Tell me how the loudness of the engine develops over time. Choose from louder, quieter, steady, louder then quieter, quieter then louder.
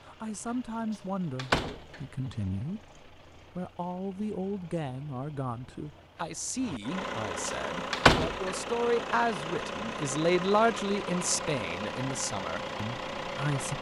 louder.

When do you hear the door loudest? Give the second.
8 s.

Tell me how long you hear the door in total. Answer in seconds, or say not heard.
2 s.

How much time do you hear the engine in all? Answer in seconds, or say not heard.
14 s.